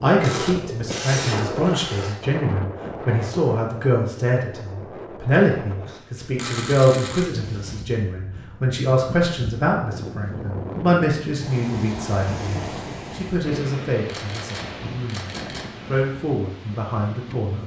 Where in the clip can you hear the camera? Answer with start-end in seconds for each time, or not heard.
0.2-2.2, 6.3-7.2, 14.1-15.7.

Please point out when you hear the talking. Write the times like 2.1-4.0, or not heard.
0.0-17.6.